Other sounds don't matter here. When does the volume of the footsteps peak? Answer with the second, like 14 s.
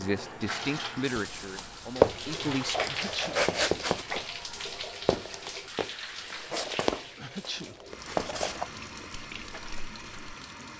2 s.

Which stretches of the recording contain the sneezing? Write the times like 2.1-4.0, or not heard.
2.8-3.5, 7.2-7.8.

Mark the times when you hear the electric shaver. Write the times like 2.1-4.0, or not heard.
not heard.